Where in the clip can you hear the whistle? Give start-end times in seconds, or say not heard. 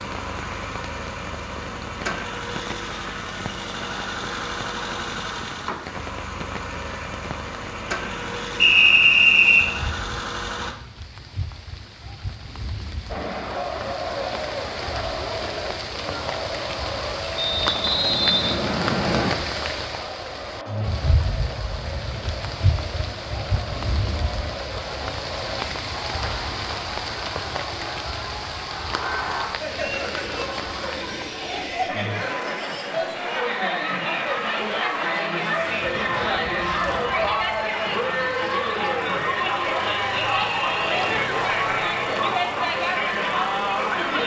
8.6-9.7, 17.4-19.4, 40.1-41.0.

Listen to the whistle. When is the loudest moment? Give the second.
9 s.